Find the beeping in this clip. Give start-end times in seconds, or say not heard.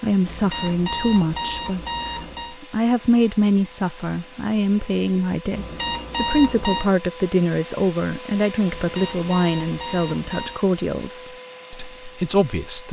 0.2-2.5, 5.5-6.9, 8.7-10.6.